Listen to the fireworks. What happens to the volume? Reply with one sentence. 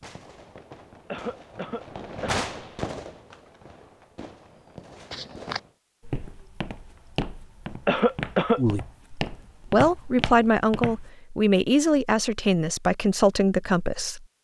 The volume of the fireworks goes up, then down.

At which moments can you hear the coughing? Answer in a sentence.
You can hear the coughing from 1.1 to 2.5 s and from 7.8 to 8.6 s.